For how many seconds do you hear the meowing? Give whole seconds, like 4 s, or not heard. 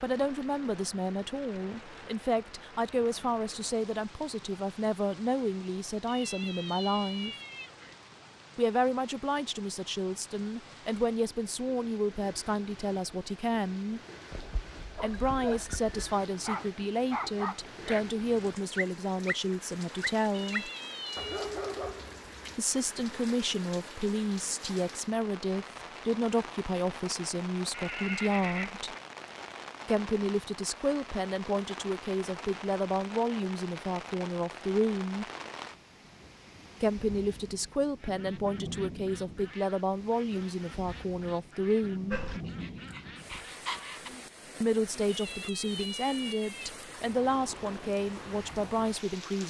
5 s.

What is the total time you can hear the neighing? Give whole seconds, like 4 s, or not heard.
3 s.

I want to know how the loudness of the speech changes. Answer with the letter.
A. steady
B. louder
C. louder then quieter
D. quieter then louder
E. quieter
A.